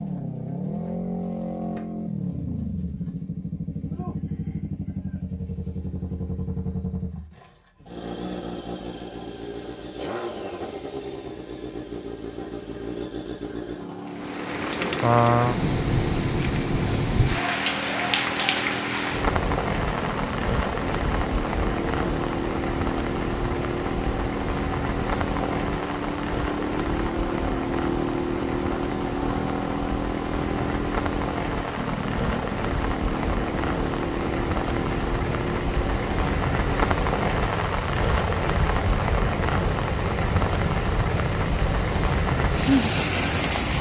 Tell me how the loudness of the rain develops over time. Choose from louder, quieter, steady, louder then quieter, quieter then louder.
quieter then louder.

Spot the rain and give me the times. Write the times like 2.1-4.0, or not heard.
14.1-43.7.